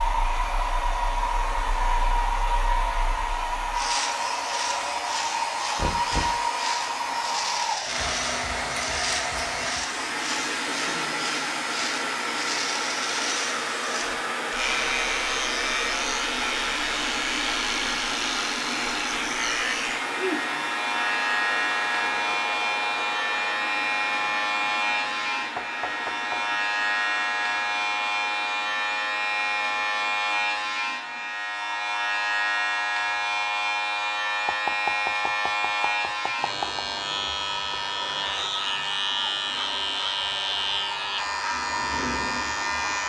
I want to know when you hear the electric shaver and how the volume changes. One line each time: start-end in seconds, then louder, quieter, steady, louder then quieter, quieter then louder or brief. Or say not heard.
0.0-43.0 louder.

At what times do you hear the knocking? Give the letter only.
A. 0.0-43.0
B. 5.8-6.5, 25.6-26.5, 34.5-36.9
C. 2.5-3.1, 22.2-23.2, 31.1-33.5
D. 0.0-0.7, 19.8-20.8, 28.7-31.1
B.